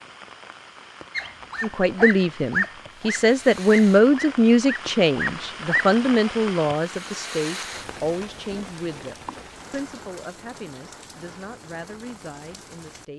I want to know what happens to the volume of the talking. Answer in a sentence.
The volume of the talking goes down.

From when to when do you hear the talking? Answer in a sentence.
The talking can be heard from 1.6 to 13.1 s.